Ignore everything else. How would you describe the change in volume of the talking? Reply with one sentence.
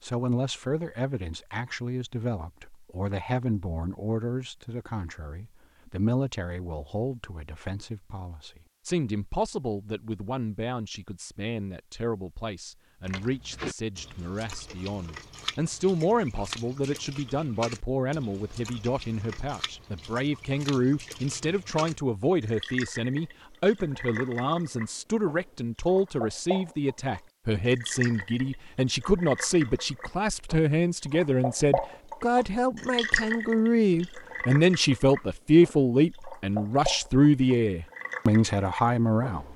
The loudness of the talking goes up.